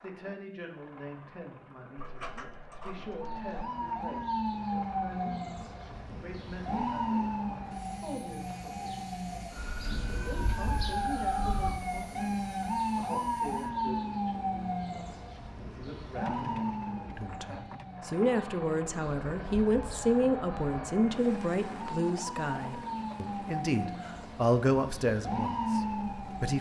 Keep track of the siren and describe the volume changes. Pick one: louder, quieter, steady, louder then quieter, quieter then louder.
quieter then louder.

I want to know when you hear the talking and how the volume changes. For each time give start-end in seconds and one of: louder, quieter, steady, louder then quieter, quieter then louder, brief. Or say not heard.
0.0-26.5 louder.